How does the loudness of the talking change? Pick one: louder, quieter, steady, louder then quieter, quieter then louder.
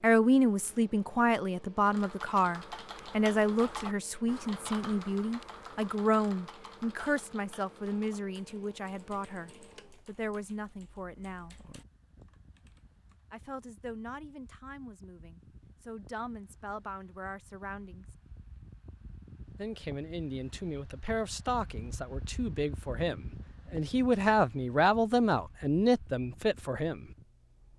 quieter then louder.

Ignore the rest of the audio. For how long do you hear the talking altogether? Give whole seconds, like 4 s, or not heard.
24 s.